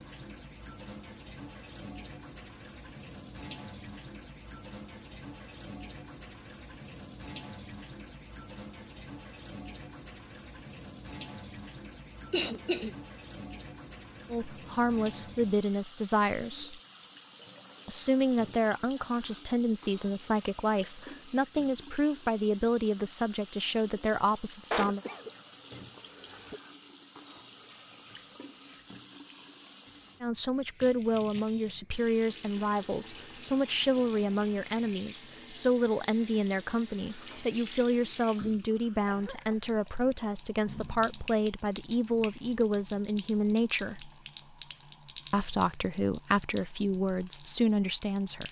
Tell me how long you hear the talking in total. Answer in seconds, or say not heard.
27 s.